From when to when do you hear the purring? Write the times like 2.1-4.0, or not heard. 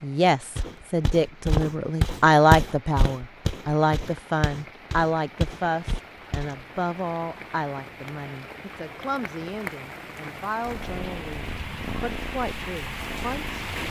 10.6-13.8.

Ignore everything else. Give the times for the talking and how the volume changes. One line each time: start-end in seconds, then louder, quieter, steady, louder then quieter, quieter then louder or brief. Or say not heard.
0.0-13.6 quieter.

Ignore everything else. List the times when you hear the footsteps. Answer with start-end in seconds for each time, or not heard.
0.6-6.6.